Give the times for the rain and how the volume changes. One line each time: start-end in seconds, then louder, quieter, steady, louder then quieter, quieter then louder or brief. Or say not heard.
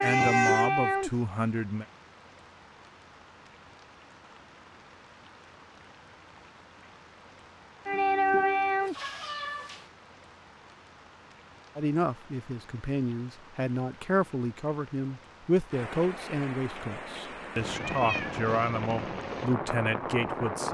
0.0-20.6 quieter then louder.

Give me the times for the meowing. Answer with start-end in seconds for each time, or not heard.
0.0-0.7, 8.8-9.9, 17.7-18.4.